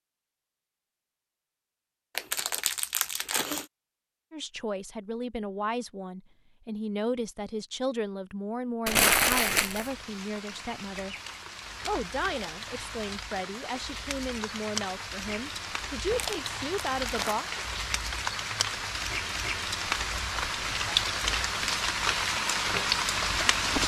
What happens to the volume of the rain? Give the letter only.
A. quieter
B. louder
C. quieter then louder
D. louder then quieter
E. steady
B.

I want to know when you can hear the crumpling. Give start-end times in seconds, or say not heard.
2.1-3.6, 8.8-9.9, 16.1-17.4.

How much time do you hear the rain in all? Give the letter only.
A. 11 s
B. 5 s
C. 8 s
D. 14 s
D.